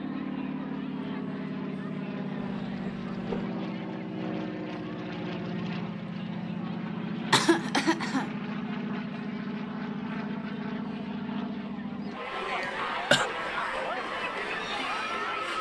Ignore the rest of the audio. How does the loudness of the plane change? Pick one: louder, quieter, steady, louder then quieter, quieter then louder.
quieter.